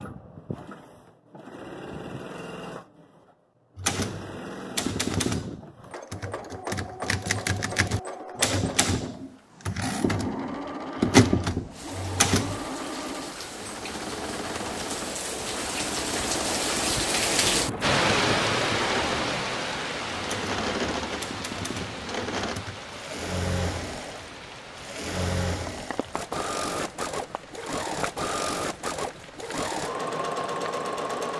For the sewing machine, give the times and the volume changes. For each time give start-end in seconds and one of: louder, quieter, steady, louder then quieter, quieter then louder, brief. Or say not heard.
0.0-31.3 louder.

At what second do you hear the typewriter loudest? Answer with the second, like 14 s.
11 s.